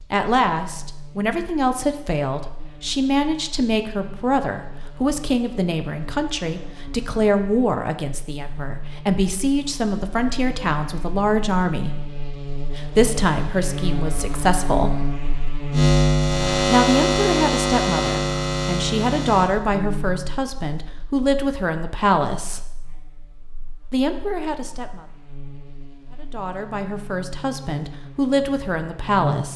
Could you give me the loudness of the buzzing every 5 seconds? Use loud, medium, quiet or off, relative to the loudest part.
quiet, quiet, medium, loud, quiet, quiet.